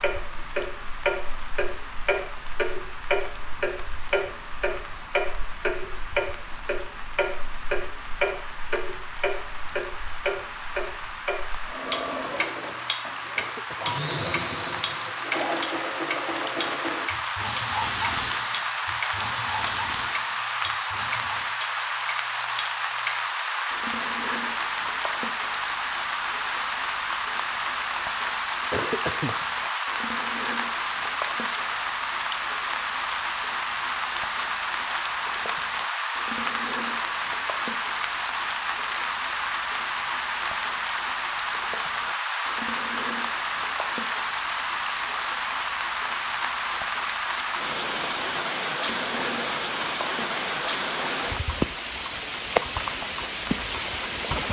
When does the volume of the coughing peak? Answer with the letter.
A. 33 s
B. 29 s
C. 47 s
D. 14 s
B.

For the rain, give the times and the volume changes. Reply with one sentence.
The rain can be heard from 0.0 to 54.4 s, getting louder.